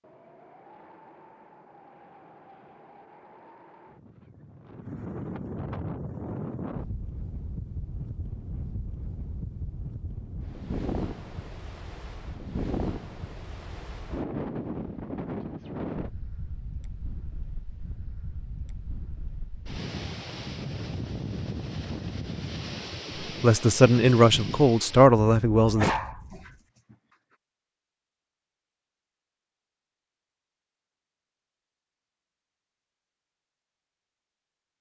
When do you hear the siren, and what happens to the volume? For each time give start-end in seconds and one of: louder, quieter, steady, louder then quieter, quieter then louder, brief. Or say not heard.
not heard.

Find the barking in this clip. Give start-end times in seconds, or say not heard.
25.6-26.9.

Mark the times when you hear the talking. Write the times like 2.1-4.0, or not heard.
23.4-25.9.